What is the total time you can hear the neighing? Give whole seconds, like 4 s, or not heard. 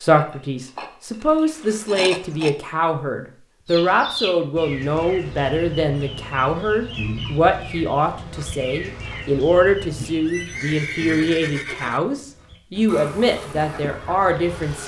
2 s.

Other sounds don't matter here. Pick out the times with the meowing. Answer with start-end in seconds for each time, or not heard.
not heard.